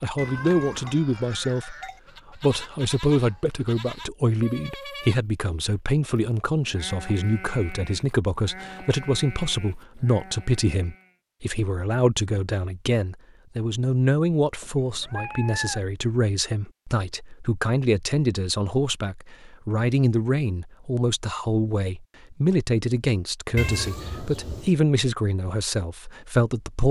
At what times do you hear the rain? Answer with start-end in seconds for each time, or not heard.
not heard.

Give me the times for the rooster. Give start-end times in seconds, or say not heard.
not heard.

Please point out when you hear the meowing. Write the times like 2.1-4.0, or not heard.
0.1-0.9, 14.6-15.8, 23.6-24.7.